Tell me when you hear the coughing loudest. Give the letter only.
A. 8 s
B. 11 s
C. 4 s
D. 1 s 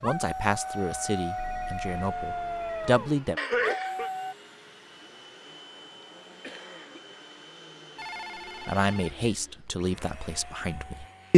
C.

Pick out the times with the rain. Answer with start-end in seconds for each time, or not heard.
not heard.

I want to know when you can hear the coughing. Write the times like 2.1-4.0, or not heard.
3.4-4.1, 6.0-7.2.